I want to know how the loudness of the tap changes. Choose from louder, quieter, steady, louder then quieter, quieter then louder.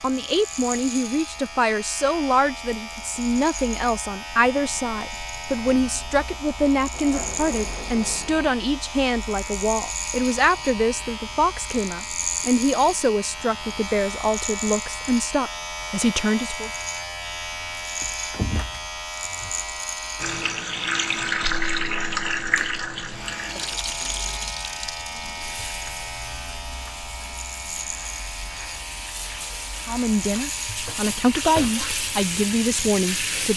quieter then louder.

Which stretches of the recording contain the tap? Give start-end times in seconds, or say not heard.
20.1-33.5.